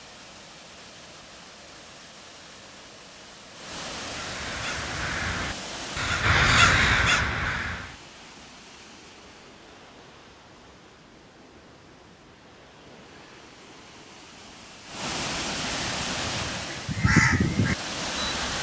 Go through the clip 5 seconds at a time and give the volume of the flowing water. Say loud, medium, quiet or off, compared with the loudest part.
medium, medium, quiet, loud.